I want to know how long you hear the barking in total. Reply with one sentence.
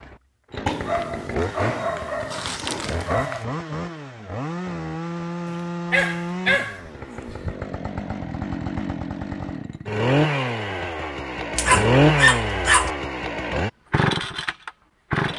You can hear the barking for 6 seconds altogether.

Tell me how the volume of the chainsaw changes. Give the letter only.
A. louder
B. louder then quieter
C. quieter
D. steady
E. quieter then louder
A.